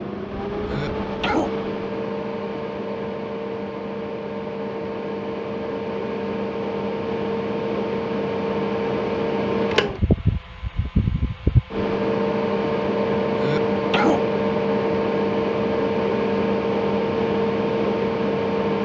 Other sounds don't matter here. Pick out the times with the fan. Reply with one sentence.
The fan can be heard from 0.0 to 18.8 s.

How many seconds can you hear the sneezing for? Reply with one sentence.
You can hear the sneezing for 2 seconds altogether.